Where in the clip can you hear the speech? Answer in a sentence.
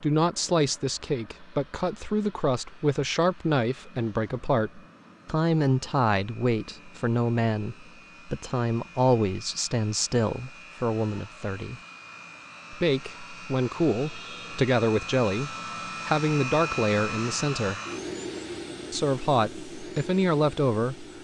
The speech can be heard from 0.0 to 11.8 s, from 12.7 to 17.8 s and from 18.9 to 21.1 s.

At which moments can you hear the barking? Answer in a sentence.
You can't hear the barking here.